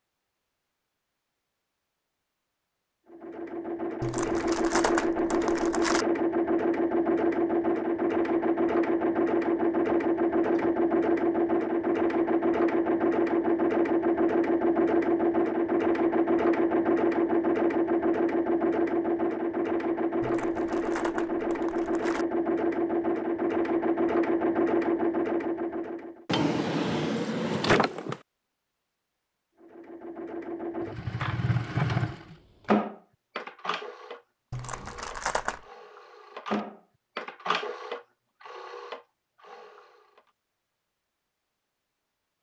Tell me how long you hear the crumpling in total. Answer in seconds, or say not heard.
5 s.